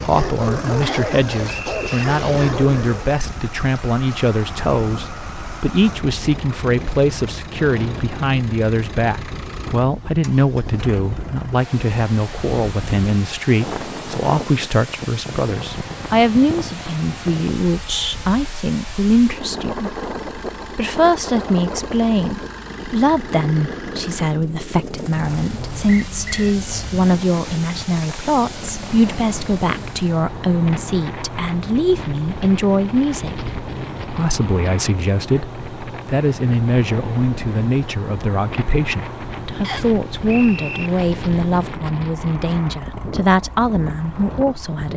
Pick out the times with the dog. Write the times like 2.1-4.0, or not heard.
0.0-3.2.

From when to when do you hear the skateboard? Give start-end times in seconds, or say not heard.
not heard.